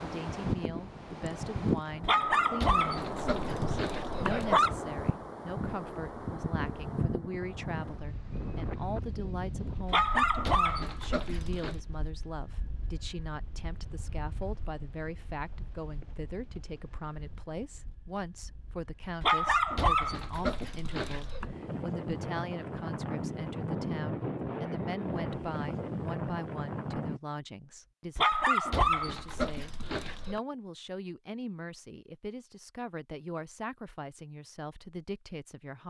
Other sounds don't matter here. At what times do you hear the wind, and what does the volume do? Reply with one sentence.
You can hear the wind from 0.0 to 27.2 s, getting quieter then louder.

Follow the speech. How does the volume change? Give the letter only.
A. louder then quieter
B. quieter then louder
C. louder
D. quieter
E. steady
E.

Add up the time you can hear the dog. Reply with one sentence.
You can hear the dog for 9 seconds altogether.